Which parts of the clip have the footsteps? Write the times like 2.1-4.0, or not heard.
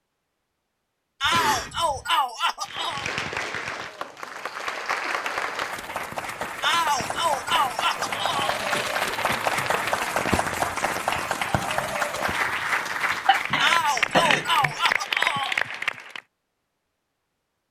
not heard.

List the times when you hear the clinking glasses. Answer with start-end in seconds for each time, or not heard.
not heard.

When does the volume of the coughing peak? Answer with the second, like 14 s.
14 s.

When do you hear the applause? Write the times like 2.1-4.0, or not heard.
2.6-16.2.